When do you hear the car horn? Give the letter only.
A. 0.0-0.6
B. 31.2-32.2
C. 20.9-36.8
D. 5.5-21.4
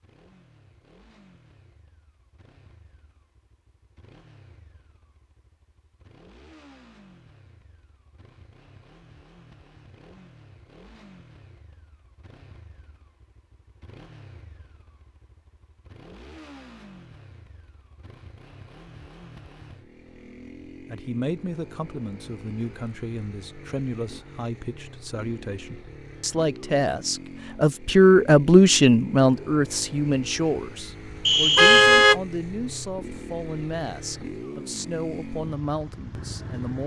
B.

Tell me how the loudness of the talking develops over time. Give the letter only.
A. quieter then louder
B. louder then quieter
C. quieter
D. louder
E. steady
B.